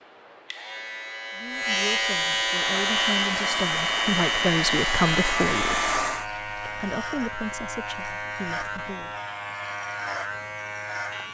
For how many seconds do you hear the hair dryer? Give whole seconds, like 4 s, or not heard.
4 s.